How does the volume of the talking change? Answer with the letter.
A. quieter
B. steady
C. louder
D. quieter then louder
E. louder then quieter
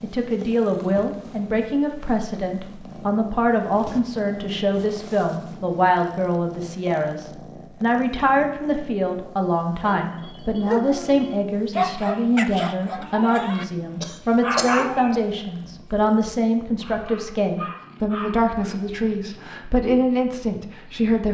B.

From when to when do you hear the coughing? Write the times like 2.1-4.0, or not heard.
14.0-15.2.